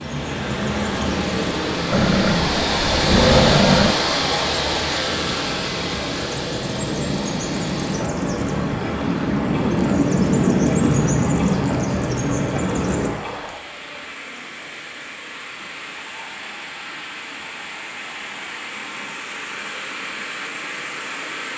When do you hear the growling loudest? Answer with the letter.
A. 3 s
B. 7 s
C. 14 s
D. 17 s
A.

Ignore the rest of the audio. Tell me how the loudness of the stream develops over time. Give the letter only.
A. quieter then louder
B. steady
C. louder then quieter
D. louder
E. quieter
E.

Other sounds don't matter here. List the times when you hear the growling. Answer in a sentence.
The growling can be heard from 1.9 to 4.0 s.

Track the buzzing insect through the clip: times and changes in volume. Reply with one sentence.
The buzzing insect can't be heard in this clip.